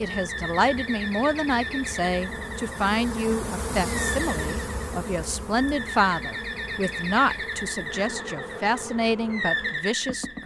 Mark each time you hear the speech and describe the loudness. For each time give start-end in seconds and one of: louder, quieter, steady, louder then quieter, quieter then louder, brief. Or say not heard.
0.0-10.4 steady.